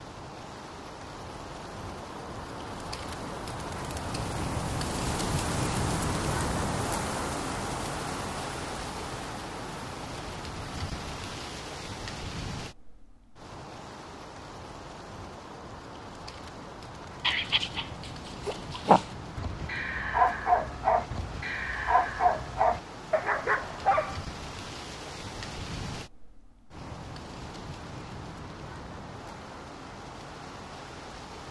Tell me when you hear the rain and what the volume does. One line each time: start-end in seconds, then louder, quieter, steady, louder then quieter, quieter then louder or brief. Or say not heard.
0.0-31.4 quieter.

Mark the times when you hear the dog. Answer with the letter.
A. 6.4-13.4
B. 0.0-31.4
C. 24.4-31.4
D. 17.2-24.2
D.